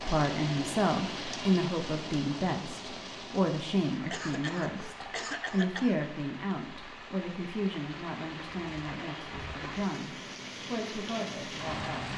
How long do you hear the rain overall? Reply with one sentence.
You can hear the rain for 12 seconds altogether.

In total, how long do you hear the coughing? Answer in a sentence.
You can hear the coughing for 2 seconds altogether.